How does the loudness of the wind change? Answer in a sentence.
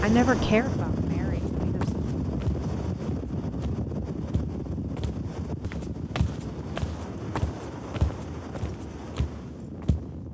The loudness of the wind goes down.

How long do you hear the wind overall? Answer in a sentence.
The wind can be heard for 10 seconds in total.